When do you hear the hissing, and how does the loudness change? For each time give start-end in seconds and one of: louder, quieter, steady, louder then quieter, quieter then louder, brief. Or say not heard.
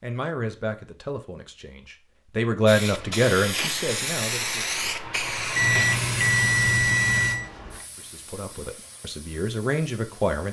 2.6-10.4 quieter.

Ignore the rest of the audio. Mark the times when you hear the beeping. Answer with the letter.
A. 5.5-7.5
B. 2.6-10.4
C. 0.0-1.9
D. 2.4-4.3
A.